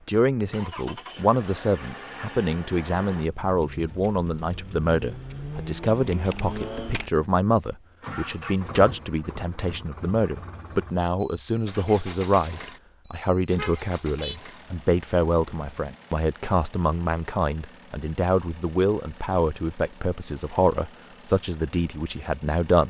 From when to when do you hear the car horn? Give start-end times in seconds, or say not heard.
13.4-14.4.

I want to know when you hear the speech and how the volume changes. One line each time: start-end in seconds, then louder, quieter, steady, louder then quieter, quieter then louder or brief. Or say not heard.
0.1-22.8 steady.